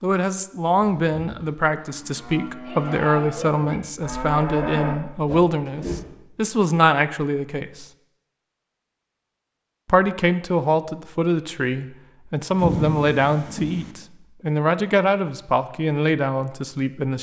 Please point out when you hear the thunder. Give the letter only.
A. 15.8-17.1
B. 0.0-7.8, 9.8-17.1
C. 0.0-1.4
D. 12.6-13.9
D.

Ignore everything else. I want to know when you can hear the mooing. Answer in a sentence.
The mooing can be heard from 0.8 to 6.0 s.